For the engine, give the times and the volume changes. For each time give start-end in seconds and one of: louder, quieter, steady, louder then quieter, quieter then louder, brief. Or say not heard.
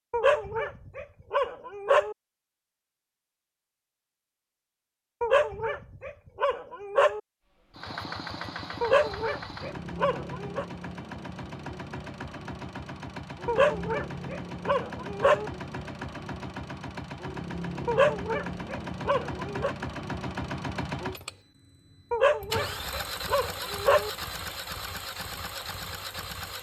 7.7-26.5 steady.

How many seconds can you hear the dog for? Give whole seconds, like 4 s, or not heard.
12 s.